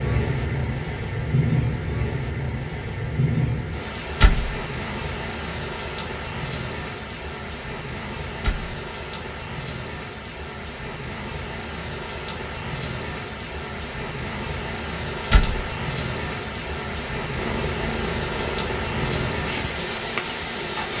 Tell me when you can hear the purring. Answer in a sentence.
You can hear the purring from 17.4 to 20.9 s.